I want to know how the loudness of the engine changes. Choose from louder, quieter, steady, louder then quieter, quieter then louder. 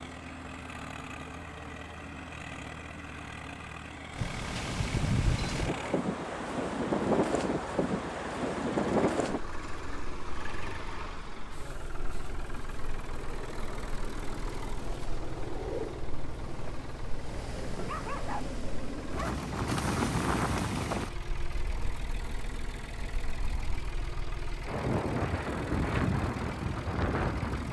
steady.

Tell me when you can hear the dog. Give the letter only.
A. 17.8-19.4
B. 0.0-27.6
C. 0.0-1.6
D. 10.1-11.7
A.